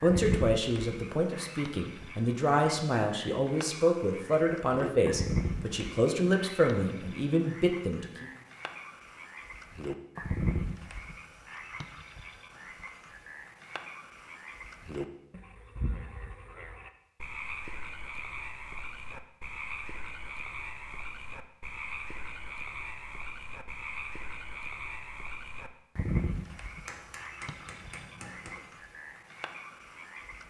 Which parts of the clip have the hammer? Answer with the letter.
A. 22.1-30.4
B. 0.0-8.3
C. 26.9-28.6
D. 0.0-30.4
C.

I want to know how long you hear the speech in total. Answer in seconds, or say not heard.
8 s.